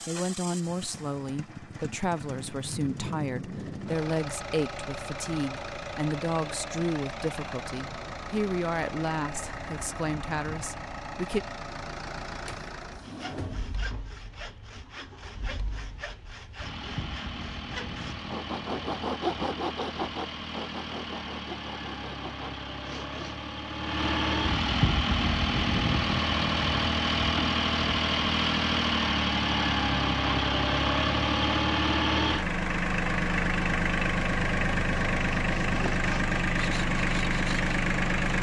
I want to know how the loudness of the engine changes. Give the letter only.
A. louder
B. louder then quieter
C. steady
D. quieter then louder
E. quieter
A.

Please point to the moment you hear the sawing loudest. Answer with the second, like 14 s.
19 s.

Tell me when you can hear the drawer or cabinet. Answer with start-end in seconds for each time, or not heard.
12.4-13.8.